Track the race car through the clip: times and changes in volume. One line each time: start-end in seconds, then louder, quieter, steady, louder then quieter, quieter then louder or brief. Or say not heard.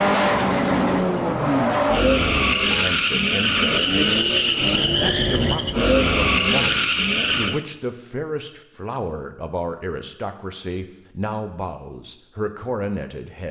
0.0-7.7 steady.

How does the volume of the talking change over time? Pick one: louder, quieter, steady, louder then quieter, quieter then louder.
steady.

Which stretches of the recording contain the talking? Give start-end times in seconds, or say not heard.
2.6-13.4.